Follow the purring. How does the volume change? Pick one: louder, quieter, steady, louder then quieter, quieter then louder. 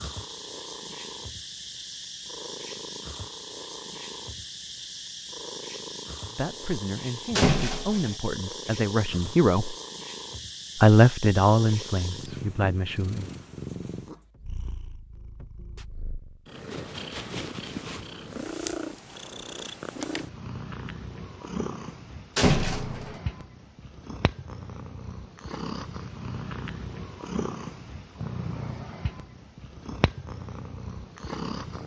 steady.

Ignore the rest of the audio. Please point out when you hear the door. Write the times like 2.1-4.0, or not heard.
7.3-8.2, 22.4-23.1.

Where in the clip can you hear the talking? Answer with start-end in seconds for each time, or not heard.
6.3-9.8, 10.8-13.3.